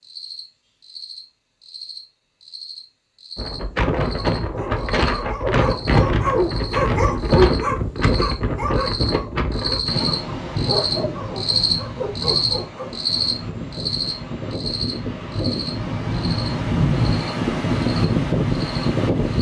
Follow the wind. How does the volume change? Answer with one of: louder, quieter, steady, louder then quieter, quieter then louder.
quieter then louder.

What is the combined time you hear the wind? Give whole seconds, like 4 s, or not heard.
16 s.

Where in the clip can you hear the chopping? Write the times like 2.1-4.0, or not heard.
not heard.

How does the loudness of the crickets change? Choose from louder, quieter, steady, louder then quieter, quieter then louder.
louder then quieter.